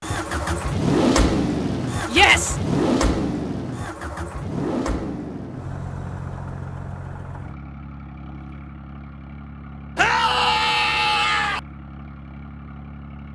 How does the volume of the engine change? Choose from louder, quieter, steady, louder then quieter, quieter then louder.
quieter.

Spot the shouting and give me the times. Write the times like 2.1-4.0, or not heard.
2.1-2.5, 9.9-11.6.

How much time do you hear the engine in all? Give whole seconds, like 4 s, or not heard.
13 s.